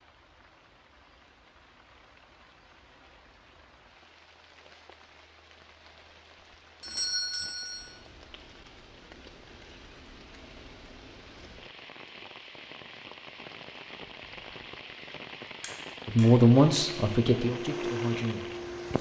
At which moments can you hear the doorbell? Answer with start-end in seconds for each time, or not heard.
6.8-7.9, 15.6-16.3.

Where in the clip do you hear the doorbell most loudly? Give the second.
7 s.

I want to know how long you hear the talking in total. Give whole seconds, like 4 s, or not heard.
3 s.